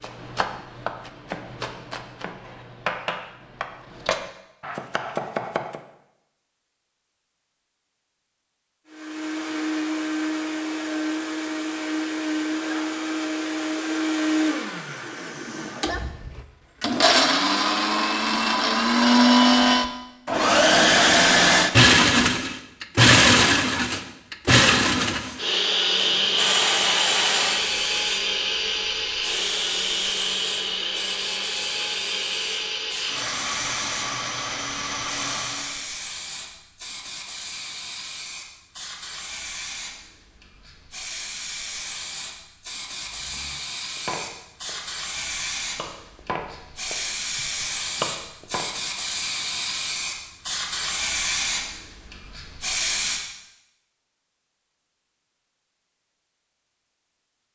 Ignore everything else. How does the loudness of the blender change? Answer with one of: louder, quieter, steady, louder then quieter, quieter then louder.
louder then quieter.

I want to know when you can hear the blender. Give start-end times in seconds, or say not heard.
8.9-35.9.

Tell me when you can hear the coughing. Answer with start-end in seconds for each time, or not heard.
not heard.